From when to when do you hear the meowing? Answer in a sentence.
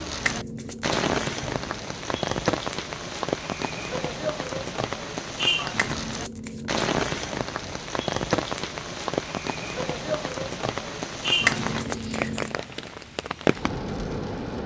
The meowing can't be heard in this clip.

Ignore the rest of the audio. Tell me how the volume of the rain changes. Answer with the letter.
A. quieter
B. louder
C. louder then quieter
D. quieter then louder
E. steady
E.